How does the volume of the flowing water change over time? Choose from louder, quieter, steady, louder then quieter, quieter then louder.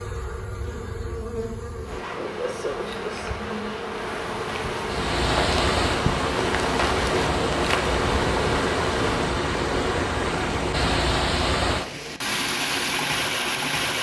steady.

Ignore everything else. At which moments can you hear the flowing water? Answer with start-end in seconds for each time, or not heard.
4.8-13.9.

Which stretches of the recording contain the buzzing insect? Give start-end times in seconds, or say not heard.
0.0-9.3.